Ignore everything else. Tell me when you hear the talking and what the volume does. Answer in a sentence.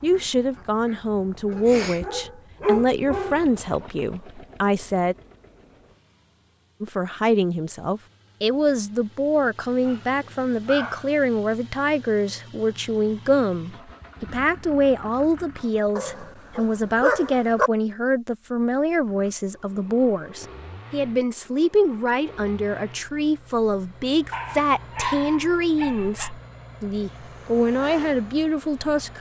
You can hear the talking from 0.0 to 5.2 s, at a steady volume; and from 6.8 to 29.1 s, at a steady volume.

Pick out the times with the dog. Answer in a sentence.
You can hear the dog from 1.5 to 3.9 s, from 9.8 to 11.1 s, from 15.9 to 17.7 s and from 24.3 to 26.4 s.